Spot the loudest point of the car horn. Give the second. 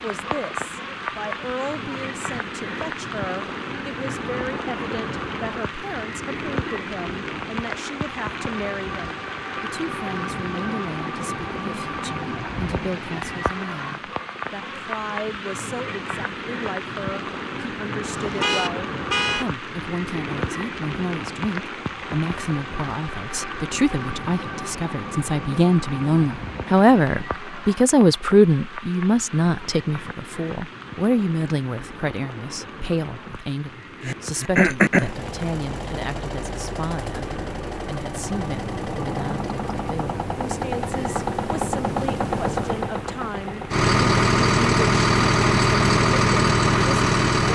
19 s.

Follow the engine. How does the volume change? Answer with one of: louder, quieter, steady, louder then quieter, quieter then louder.
louder.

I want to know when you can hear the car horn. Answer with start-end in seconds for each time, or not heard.
18.1-19.4.